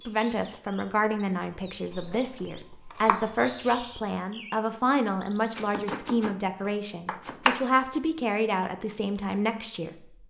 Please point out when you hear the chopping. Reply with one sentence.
You can hear the chopping from 1.9 to 3.4 s and from 5.5 to 7.6 s.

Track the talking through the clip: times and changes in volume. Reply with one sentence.
The talking can be heard from 0.1 to 10.1 s, at a steady volume.